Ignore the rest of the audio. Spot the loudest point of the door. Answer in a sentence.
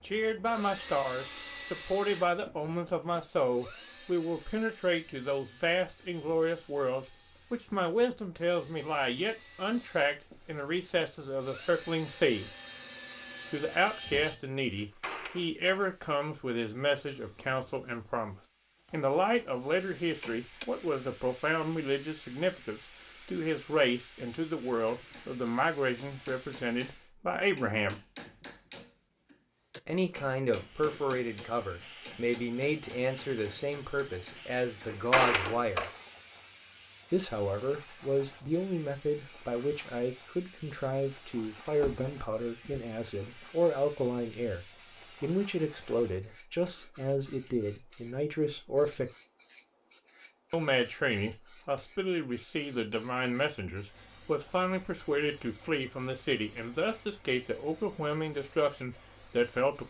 The volume of the door peaks at 35 seconds.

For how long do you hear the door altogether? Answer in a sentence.
The door can be heard for 3 seconds in total.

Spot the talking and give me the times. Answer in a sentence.
The talking can be heard from 0.0 to 12.5 s, from 13.5 to 28.0 s, from 29.9 to 35.9 s, from 37.1 to 49.1 s and from 50.5 to 59.8 s.